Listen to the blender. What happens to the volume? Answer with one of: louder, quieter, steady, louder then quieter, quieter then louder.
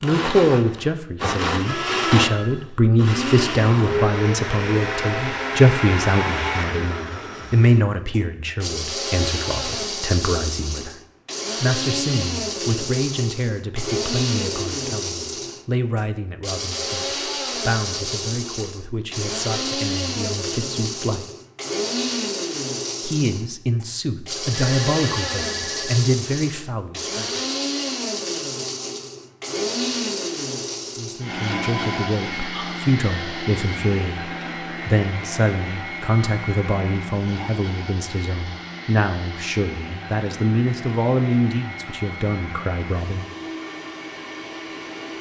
quieter.